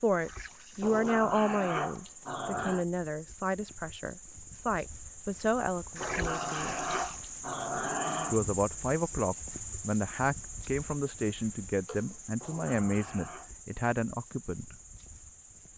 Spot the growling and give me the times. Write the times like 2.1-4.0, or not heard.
0.8-2.9, 6.0-8.4, 12.4-13.5.